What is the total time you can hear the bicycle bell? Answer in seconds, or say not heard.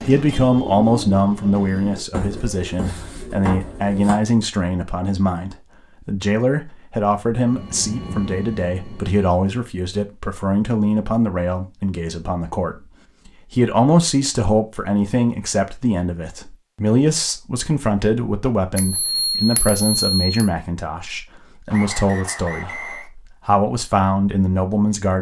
2 s.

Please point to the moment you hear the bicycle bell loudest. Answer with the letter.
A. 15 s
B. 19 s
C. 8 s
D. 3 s
B.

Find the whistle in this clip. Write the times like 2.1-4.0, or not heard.
21.7-23.1.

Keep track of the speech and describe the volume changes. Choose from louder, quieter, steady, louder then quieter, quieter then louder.
steady.